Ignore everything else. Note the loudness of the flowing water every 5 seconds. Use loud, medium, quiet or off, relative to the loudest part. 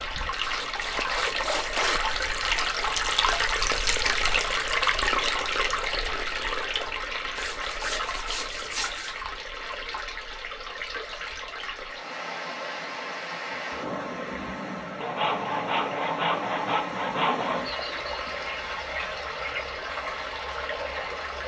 loud, loud, medium, medium, medium.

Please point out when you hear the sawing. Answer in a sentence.
You can hear the sawing from 0.4 to 2.2 s, from 7.3 to 9.2 s and from 15.0 to 17.7 s.